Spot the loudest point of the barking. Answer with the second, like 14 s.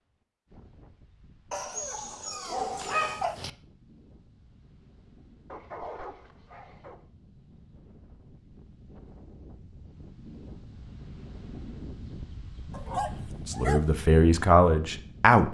3 s.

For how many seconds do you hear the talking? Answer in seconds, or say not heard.
2 s.